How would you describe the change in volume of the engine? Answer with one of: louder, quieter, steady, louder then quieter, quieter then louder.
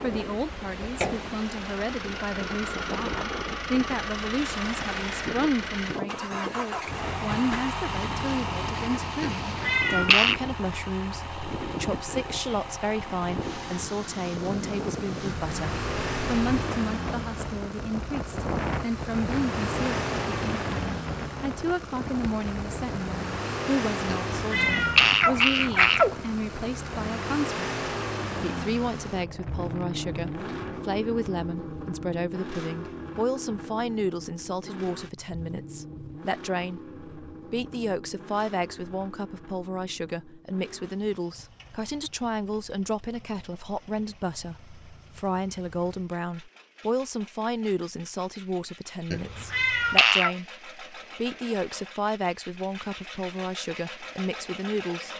quieter.